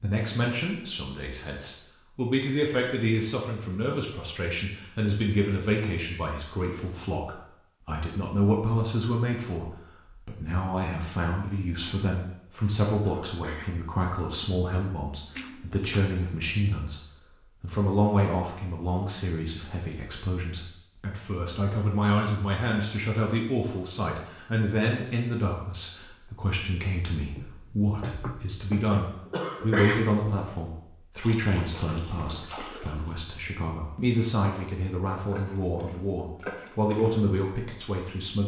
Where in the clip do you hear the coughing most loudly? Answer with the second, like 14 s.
30 s.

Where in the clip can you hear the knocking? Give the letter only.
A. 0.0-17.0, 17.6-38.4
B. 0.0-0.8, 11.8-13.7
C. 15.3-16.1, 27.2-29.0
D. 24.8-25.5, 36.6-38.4
C.